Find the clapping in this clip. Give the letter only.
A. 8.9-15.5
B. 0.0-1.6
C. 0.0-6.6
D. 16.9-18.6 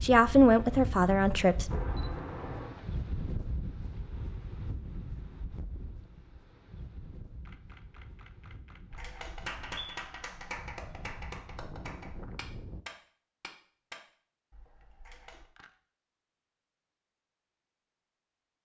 A.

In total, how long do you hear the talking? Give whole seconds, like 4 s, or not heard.
2 s.